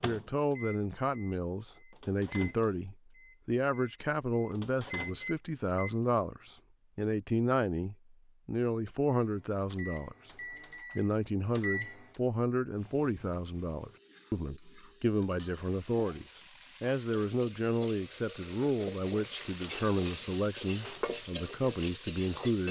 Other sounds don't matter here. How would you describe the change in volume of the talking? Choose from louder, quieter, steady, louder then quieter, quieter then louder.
steady.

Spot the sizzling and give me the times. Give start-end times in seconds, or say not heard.
12.8-22.6.